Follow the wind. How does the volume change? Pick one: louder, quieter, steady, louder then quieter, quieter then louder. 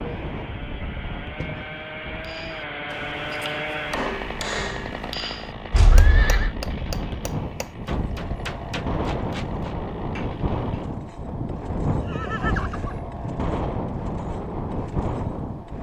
louder.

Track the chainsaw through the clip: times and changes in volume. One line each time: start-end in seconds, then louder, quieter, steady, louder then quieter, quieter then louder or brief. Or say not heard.
0.0-15.7 quieter.